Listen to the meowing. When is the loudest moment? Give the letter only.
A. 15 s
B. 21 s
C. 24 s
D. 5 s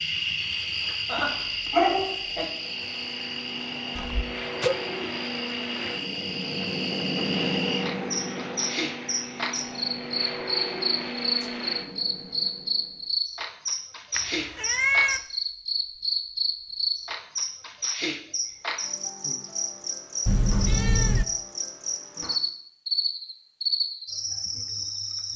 A.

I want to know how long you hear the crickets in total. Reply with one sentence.
The crickets can be heard for 25 seconds in total.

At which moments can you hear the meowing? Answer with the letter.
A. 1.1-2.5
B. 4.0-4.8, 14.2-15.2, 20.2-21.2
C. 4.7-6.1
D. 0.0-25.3
B.